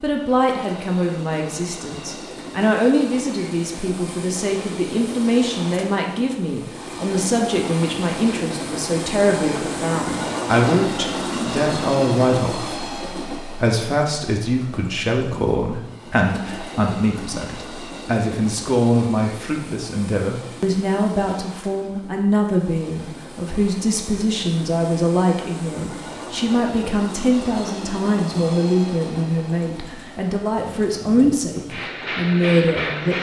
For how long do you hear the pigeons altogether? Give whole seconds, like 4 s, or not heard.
not heard.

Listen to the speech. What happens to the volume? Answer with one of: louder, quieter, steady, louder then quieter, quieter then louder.
steady.